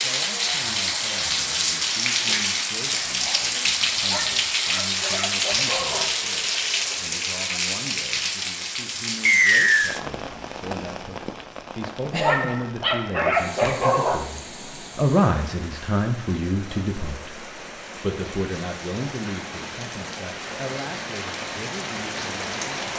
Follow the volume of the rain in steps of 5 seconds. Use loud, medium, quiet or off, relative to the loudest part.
loud, loud, medium, quiet, medium.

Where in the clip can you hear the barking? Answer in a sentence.
You can hear the barking from 4.0 to 6.0 s and from 12.2 to 14.2 s.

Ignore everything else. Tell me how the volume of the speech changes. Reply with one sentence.
The loudness of the speech goes up, then down.